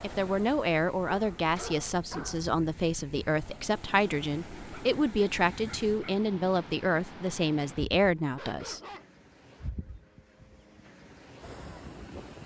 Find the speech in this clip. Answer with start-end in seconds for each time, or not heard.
0.0-8.8.